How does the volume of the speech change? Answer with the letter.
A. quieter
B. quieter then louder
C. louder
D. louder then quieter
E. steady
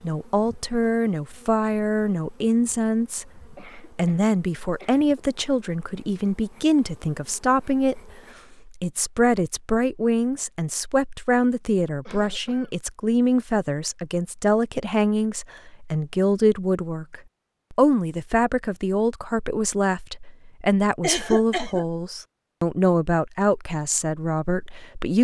E.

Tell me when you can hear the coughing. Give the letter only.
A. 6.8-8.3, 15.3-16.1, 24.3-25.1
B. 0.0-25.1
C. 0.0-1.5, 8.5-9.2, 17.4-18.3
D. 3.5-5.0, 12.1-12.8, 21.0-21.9
D.